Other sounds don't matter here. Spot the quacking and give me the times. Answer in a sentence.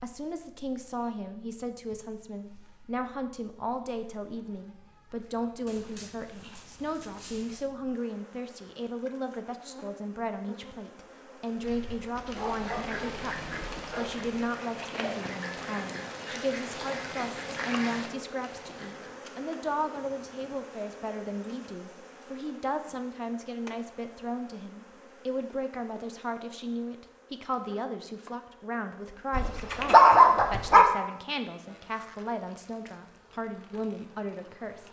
You can hear the quacking from 11.5 to 19.1 s.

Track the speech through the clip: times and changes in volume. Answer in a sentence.
You can hear the speech from 0.0 to 34.8 s, at a steady volume.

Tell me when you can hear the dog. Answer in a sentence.
You can hear the dog from 5.7 to 7.7 s, from 12.2 to 14.3 s and from 29.3 to 30.9 s.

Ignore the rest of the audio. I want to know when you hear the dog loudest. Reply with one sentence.
The loudest moment of the dog is at 30 seconds.